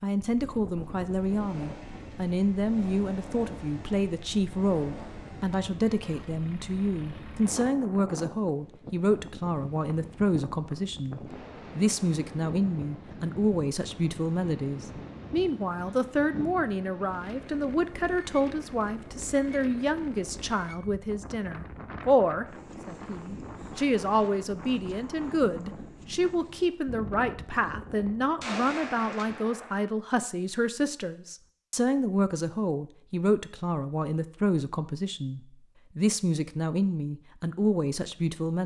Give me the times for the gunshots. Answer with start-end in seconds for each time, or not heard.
28.4-29.8.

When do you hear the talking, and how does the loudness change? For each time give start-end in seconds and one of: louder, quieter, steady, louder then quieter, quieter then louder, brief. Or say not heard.
0.0-38.6 steady.